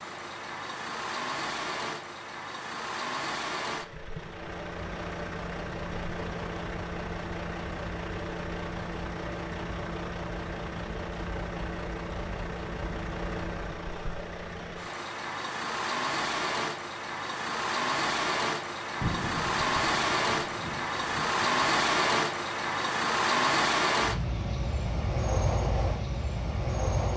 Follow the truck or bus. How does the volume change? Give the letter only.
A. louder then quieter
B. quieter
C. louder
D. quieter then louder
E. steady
C.